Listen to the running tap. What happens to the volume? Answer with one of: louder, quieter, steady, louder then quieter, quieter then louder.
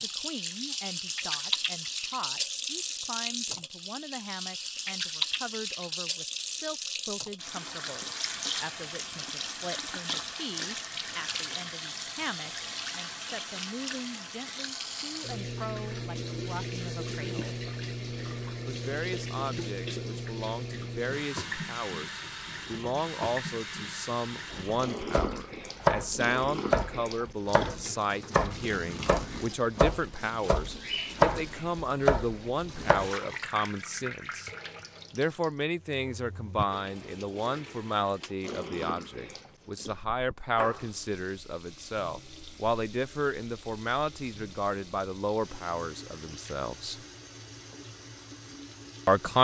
quieter.